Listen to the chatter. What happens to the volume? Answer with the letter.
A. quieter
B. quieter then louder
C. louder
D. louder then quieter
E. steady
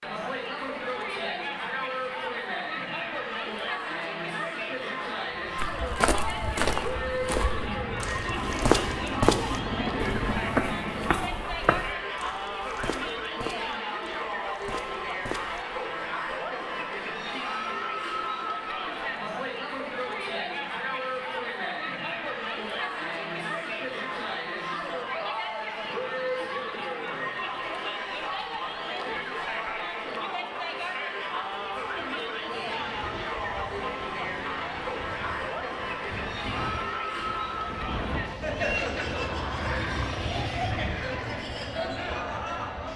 E.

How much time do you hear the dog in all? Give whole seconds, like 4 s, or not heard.
not heard.